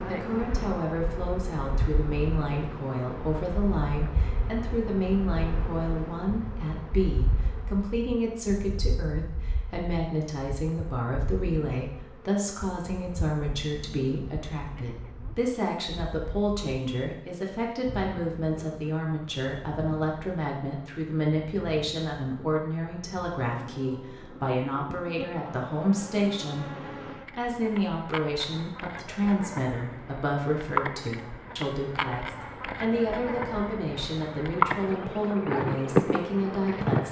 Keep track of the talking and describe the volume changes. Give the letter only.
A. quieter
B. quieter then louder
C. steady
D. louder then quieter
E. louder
C.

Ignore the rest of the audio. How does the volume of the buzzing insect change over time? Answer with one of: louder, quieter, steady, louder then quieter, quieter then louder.
quieter then louder.